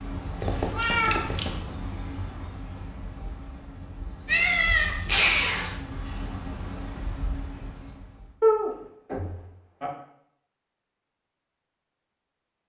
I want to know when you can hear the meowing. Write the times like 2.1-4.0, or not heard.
0.4-1.6, 4.2-5.8, 8.4-9.9.